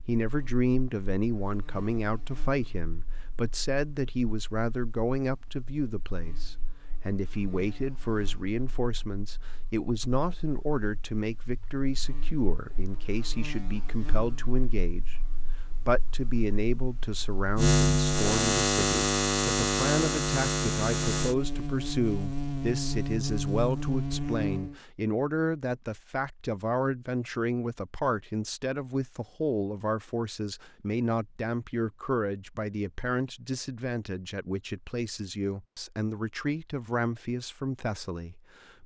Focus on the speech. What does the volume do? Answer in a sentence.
The loudness of the speech stays about the same.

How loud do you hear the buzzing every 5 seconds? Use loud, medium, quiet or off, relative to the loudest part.
quiet, quiet, quiet, loud, loud, off, off, off.